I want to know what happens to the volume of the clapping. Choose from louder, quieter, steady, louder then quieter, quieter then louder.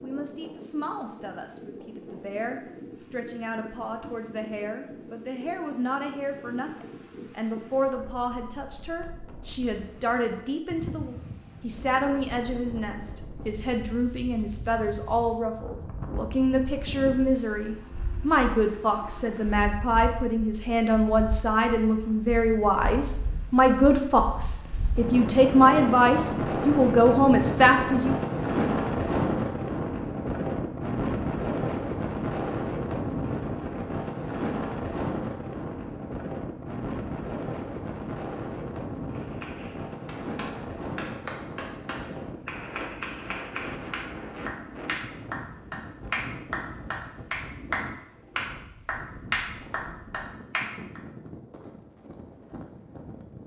louder.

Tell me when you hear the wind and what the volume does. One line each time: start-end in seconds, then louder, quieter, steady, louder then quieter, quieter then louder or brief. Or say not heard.
0.0-53.4 louder then quieter.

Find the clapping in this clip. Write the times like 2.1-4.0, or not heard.
39.1-51.0.